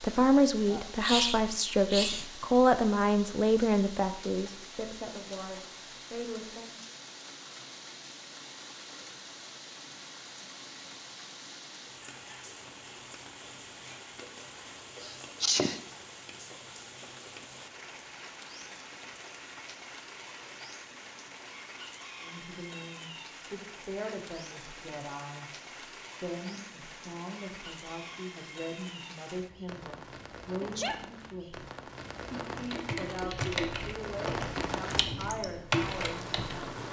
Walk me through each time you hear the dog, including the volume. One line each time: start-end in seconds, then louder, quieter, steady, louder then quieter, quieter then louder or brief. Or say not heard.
not heard.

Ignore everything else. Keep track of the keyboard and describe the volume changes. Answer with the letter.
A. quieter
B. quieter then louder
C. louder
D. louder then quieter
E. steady
B.